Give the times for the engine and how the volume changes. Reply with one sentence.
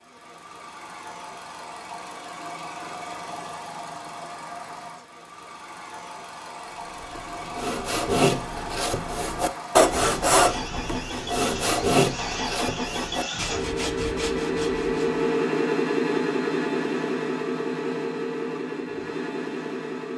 You can hear the engine from 0.0 to 20.1 s, getting louder.